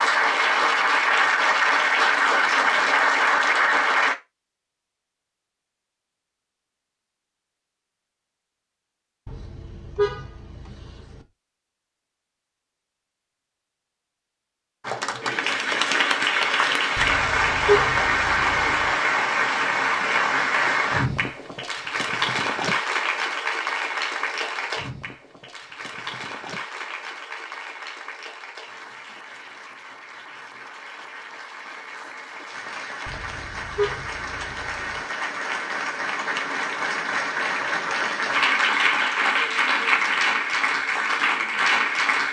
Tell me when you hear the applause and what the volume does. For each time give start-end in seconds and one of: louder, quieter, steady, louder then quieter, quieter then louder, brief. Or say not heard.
0.0-4.2 steady
14.8-42.2 quieter then louder.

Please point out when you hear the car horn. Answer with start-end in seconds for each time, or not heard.
9.2-11.2, 16.9-18.9, 33.0-35.0.